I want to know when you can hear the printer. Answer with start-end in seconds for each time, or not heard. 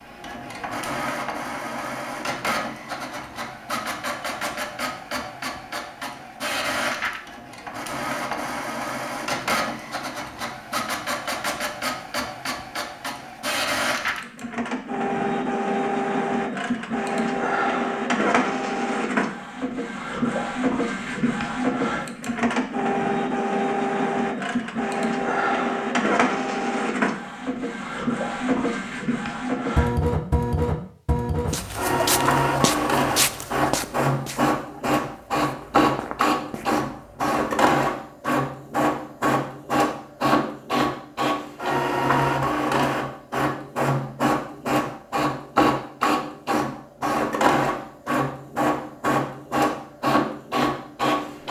0.0-51.4.